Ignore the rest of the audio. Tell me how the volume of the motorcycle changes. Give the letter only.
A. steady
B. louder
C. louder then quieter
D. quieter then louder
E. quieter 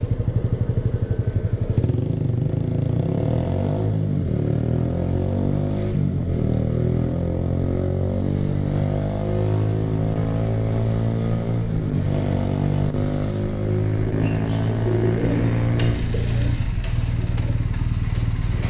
A.